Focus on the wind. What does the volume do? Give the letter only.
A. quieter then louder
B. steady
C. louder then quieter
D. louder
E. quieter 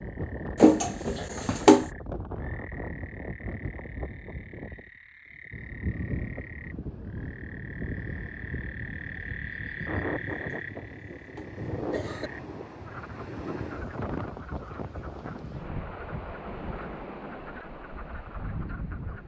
B.